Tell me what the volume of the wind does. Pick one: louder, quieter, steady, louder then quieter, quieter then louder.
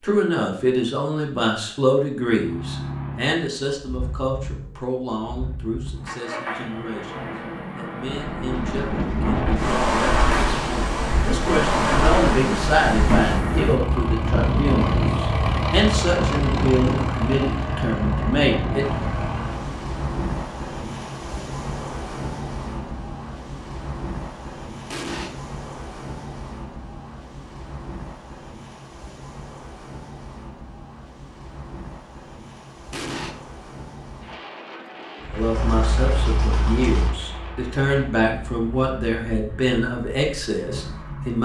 quieter.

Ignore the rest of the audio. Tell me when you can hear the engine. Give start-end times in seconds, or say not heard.
2.2-19.9, 35.2-41.4.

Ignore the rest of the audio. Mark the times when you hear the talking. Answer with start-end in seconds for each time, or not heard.
0.0-18.9, 35.3-41.4.